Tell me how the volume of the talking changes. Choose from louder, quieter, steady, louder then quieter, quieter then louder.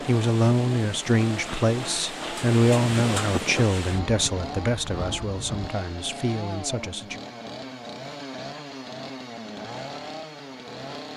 quieter.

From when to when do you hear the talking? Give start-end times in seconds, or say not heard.
0.0-7.2.